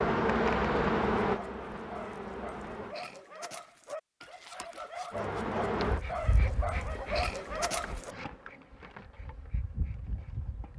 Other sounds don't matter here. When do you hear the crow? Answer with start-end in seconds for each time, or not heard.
not heard.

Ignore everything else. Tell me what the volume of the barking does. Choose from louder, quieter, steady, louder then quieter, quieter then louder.
louder.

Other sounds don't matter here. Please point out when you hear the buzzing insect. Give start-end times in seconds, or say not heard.
0.0-3.0, 5.1-10.7.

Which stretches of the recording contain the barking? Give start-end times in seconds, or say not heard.
1.2-8.2.